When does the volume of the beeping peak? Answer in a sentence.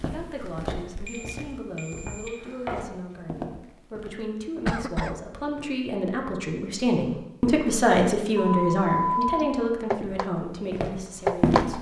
The volume of the beeping peaks at 9 seconds.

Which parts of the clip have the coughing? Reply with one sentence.
The coughing can be heard from 4.7 to 5.2 s.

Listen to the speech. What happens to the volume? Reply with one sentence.
The volume of the speech goes up, then down.